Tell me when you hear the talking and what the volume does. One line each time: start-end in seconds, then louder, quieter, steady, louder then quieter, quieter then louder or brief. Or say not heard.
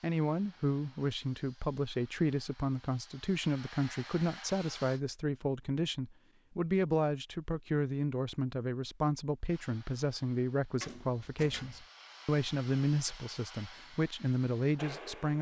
0.0-15.3 steady.